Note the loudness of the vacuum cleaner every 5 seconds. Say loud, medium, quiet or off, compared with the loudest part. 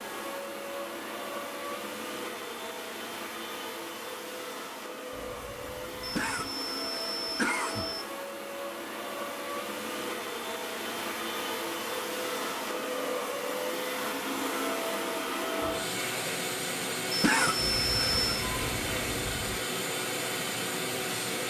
medium, medium, loud, loud, loud.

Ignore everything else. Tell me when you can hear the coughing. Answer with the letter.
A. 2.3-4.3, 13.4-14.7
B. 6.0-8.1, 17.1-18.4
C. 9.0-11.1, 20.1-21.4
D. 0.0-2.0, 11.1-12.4
B.